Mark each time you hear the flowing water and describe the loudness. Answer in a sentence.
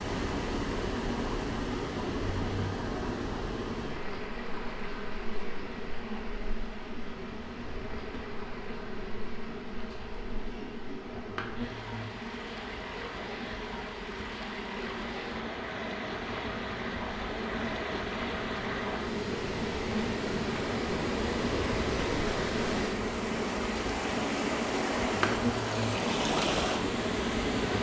You can hear the flowing water from 0.0 to 27.7 s, getting quieter then louder.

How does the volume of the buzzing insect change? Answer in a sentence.
The volume of the buzzing insect goes up.